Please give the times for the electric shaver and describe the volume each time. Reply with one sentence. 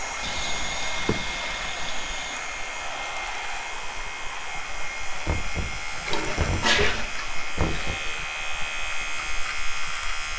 The electric shaver can be heard from 0.0 to 10.3 s, getting louder.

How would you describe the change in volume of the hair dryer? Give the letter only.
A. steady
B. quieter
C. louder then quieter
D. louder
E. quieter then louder
B.